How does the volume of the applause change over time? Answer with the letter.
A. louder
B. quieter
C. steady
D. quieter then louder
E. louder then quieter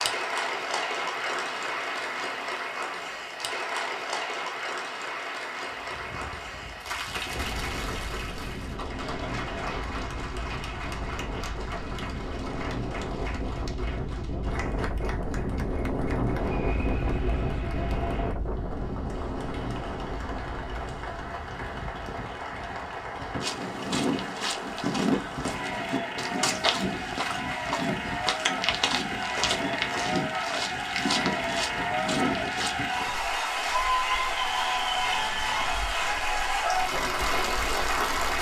D.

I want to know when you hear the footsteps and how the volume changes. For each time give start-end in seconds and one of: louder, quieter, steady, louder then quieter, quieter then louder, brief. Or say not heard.
23.4-32.9 steady.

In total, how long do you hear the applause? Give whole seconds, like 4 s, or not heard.
38 s.